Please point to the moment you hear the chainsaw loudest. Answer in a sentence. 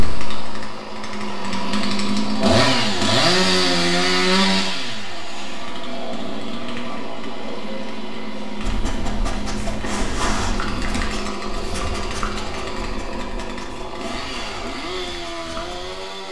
The loudest moment of the chainsaw is at 3 seconds.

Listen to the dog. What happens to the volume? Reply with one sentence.
The volume of the dog goes down.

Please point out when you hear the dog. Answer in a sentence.
You can hear the dog from 8.6 to 16.0 s.